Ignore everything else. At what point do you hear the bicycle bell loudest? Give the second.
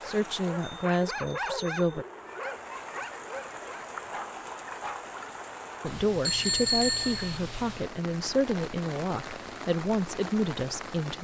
7 s.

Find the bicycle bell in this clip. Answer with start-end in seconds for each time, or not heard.
0.6-2.0, 6.2-7.4.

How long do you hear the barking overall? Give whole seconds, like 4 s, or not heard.
5 s.